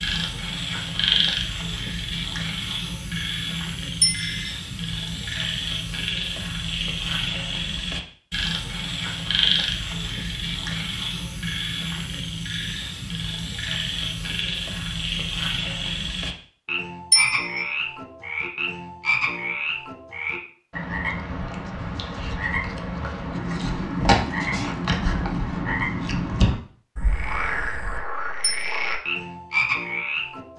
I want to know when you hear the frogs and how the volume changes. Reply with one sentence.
You can hear the frogs from 0.0 to 30.5 s, at a steady volume.